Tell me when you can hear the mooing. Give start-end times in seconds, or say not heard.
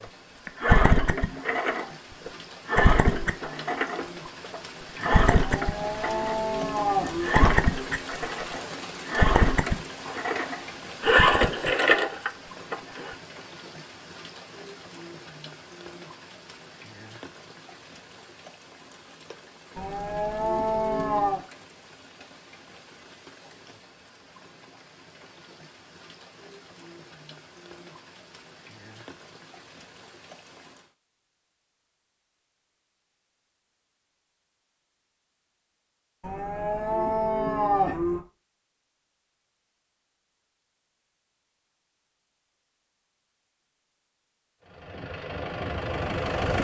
5.4-7.3, 19.8-21.4, 36.2-38.2.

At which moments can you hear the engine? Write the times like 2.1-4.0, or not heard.
0.0-13.2, 44.6-46.5.